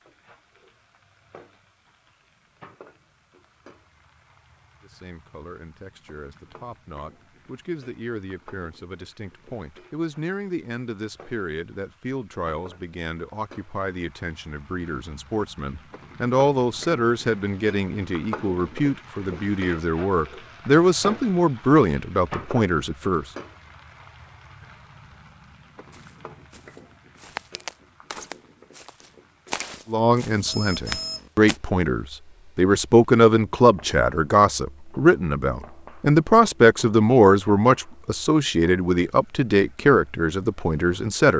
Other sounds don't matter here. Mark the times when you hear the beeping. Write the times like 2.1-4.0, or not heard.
30.4-31.3.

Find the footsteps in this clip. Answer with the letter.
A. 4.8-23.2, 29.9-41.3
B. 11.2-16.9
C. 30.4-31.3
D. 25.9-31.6
D.